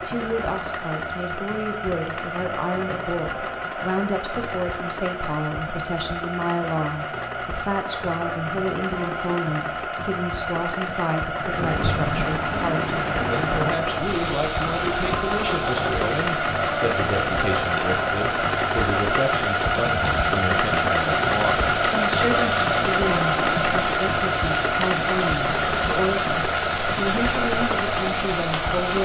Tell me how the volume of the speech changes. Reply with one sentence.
The loudness of the speech stays about the same.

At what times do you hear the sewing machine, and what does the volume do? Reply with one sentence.
The sewing machine can be heard from 0.0 to 29.0 s, getting louder.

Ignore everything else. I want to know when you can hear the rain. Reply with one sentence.
The rain can be heard from 11.4 to 29.0 s.